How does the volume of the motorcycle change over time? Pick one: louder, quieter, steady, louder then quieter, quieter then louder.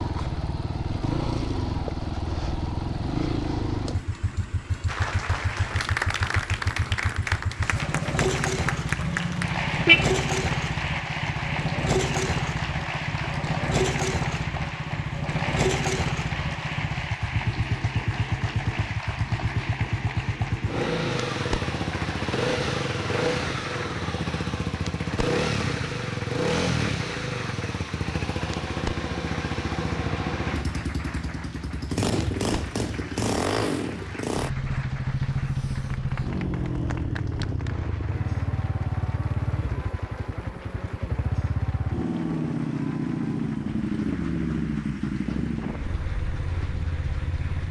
steady.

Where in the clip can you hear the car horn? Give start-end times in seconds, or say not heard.
9.0-10.1.